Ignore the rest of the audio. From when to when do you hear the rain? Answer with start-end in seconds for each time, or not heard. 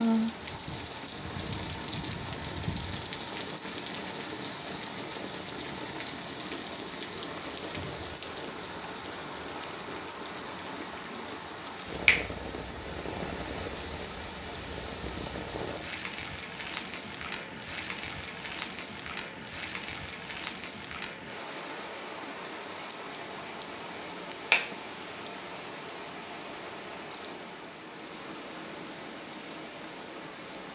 0.0-30.6.